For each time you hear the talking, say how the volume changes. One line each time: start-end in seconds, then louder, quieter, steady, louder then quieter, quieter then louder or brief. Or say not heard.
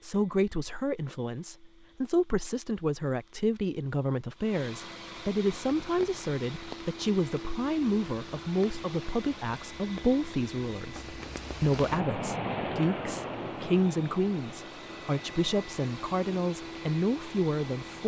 0.0-18.0 steady.